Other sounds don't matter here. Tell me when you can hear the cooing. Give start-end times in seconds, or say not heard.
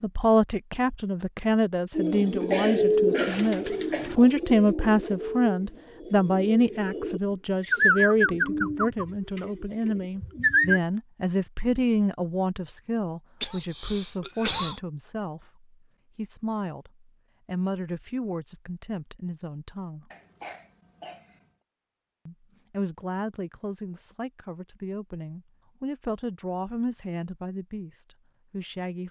1.9-10.8.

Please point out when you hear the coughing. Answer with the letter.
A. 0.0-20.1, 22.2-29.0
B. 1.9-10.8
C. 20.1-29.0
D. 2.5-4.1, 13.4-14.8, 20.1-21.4
D.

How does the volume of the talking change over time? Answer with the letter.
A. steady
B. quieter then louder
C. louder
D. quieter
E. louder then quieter
D.